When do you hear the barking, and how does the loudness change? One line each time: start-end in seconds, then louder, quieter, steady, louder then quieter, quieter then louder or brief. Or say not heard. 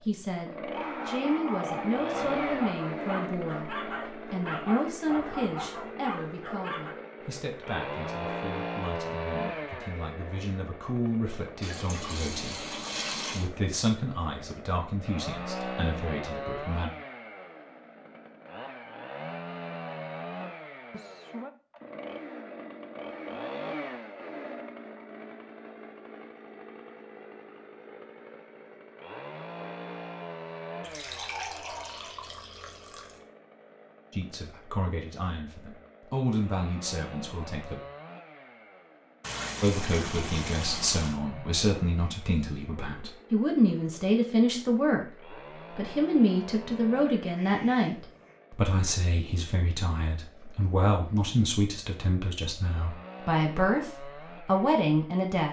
0.7-7.0 steady.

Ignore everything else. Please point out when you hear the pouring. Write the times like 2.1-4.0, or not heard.
11.6-13.5, 30.8-33.2, 39.2-41.1.